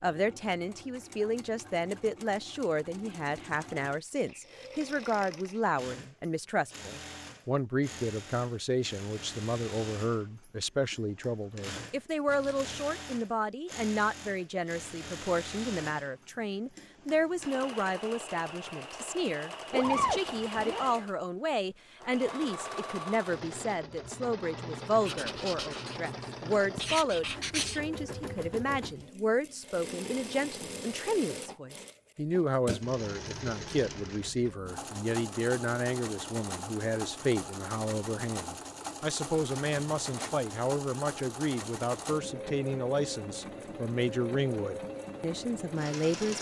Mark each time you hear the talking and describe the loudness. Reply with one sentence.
The talking can be heard from 0.0 to 46.3 s, at a steady volume.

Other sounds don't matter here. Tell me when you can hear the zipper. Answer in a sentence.
The zipper can be heard from 12.2 to 12.9 s, from 19.7 to 21.1 s and from 39.3 to 40.4 s.